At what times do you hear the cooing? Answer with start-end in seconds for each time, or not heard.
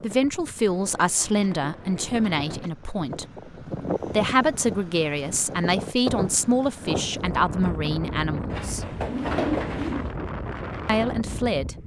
0.7-2.7, 8.5-10.2.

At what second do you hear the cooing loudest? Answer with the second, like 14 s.
9 s.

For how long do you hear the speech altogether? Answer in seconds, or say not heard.
9 s.